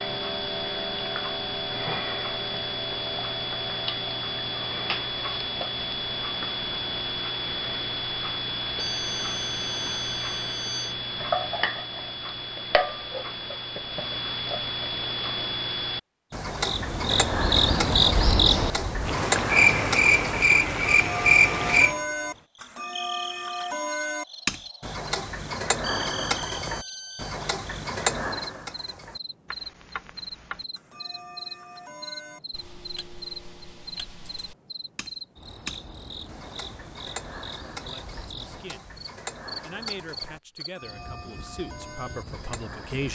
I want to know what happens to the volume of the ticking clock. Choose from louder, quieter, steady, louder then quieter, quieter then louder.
quieter.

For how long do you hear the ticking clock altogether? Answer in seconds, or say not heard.
43 s.